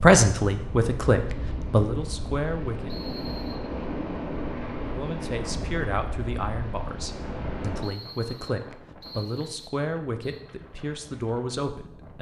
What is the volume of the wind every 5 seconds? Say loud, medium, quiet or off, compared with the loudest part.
loud, loud, quiet.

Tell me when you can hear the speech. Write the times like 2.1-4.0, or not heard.
0.0-2.9, 4.8-12.1.